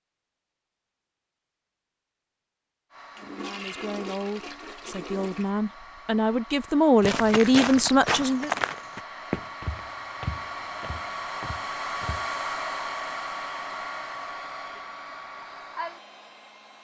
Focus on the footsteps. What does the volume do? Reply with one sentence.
The volume of the footsteps goes down.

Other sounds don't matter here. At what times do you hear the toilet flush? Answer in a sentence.
You can hear the toilet flush from 3.1 to 5.5 s.